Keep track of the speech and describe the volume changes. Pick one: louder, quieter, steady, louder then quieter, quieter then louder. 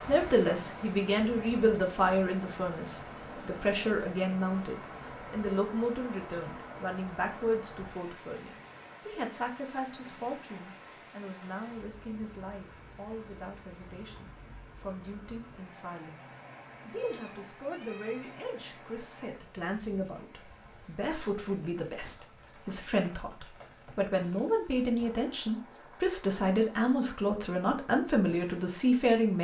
quieter then louder.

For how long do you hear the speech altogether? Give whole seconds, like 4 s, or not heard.
29 s.